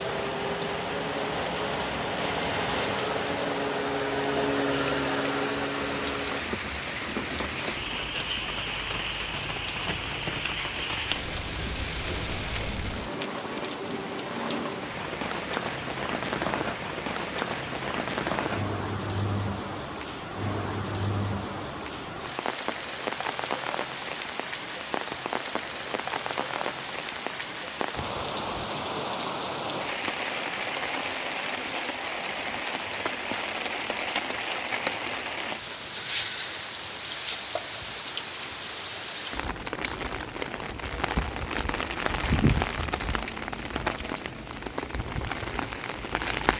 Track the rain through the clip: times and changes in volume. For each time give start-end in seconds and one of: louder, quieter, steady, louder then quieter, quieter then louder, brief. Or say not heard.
0.0-46.5 steady.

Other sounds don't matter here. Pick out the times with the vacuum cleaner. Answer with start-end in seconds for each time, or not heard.
0.0-6.5.